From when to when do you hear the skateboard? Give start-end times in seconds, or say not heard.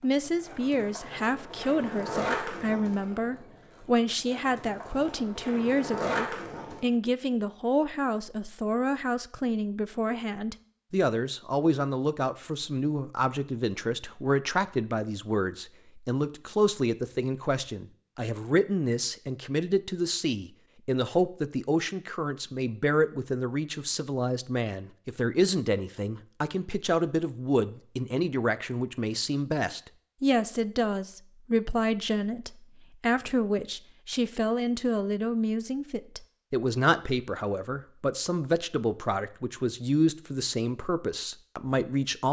0.0-6.8.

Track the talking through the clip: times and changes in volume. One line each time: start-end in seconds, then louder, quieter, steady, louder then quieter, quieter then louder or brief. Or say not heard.
0.0-42.2 steady.